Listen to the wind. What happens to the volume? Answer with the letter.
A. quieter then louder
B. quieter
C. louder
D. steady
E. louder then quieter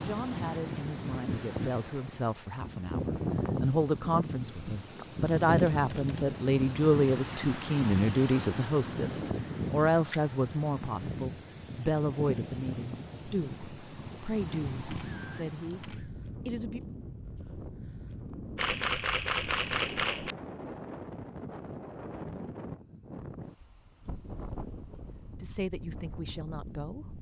B.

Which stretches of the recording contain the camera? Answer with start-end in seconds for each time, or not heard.
5.0-6.4, 14.9-16.1, 18.6-20.4.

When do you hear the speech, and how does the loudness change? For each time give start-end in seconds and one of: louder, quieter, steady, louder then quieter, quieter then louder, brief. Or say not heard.
0.0-16.8 louder then quieter
24.9-27.1 brief.